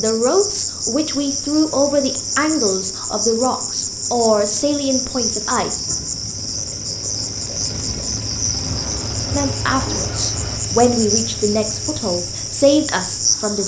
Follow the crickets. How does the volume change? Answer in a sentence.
The volume of the crickets stays about the same.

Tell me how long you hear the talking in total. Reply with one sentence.
You can hear the talking for 10 seconds altogether.